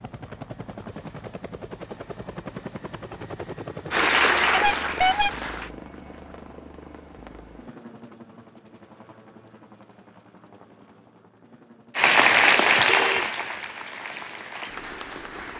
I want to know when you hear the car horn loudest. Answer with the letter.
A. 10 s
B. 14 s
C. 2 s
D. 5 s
D.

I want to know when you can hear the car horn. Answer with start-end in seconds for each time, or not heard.
4.5-5.3, 12.8-13.2.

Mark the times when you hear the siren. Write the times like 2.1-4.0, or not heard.
not heard.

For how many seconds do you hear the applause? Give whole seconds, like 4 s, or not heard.
5 s.